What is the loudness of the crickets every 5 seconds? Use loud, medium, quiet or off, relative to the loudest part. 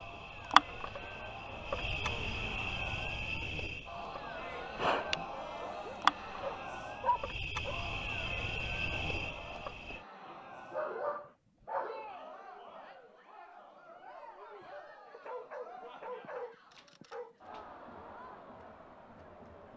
loud, loud, off, off.